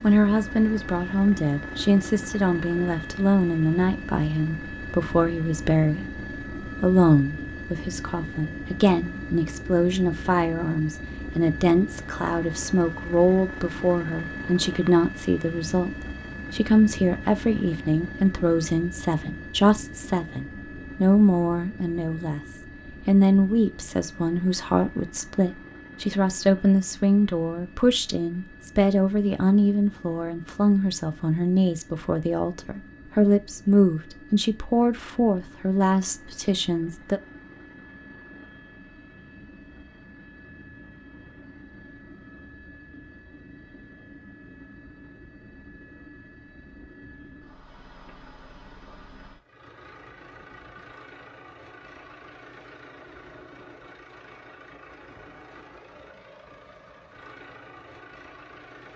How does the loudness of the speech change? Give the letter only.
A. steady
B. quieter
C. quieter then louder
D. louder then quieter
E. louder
A.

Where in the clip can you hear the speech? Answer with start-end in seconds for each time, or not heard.
0.0-22.4, 23.1-37.2.